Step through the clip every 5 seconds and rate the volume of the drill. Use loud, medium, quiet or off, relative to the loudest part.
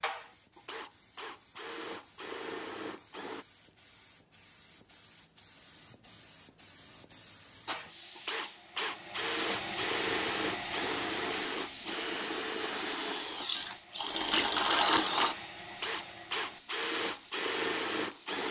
medium, loud, loud, loud.